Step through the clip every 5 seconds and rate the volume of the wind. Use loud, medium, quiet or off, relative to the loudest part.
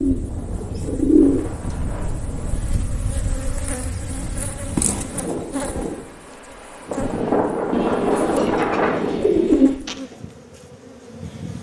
quiet, loud, off.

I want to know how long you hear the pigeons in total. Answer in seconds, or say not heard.
4 s.